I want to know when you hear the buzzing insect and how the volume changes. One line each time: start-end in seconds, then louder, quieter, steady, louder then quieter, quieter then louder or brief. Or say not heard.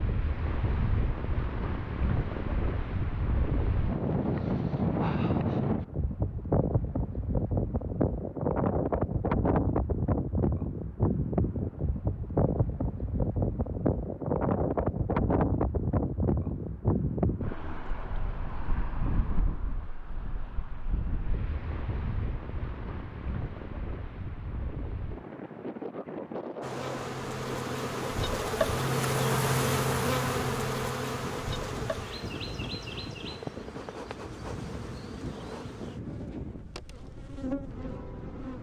26.6-38.5 quieter.